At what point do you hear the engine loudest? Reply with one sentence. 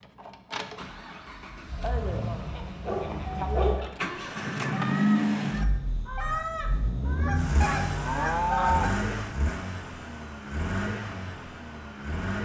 The loudest moment of the engine is at 5 seconds.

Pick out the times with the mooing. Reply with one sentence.
The mooing can be heard from 1.8 to 3.8 s and from 7.2 to 9.1 s.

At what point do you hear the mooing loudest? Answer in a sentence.
The volume of the mooing peaks at 9 seconds.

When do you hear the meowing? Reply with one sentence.
The meowing can't be heard in this clip.